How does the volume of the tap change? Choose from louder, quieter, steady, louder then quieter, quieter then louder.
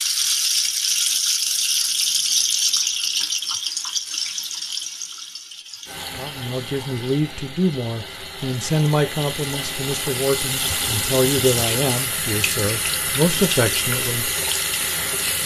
quieter then louder.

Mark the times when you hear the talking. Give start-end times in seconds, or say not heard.
6.2-14.3.